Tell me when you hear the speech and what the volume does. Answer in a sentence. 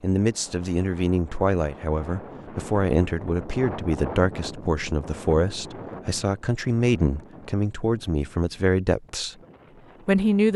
The speech can be heard from 0.0 to 9.3 s, at a steady volume; and briefly from 10.1 to 10.5 s.